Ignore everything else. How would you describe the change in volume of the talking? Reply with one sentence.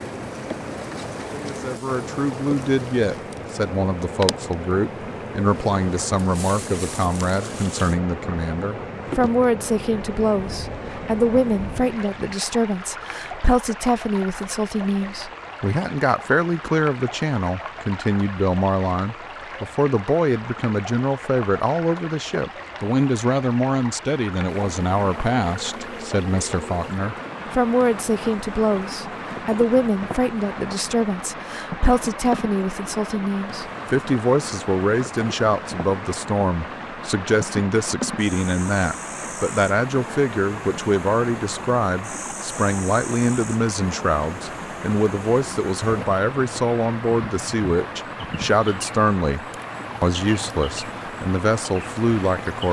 The loudness of the talking stays about the same.